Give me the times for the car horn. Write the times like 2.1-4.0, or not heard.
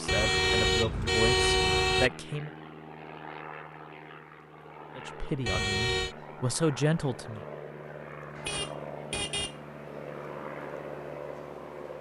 0.1-2.1, 5.5-6.2, 8.3-9.6.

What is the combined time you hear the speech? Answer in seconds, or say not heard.
5 s.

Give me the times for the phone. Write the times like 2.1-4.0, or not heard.
not heard.